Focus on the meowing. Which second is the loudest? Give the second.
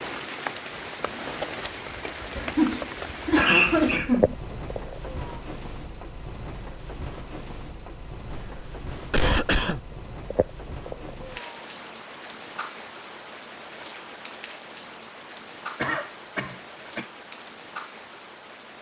4 s.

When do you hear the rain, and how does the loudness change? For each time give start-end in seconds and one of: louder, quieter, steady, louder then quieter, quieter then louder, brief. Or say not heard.
0.0-18.7 quieter.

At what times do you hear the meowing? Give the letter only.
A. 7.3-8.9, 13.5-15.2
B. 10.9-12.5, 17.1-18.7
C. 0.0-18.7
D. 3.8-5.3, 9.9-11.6
D.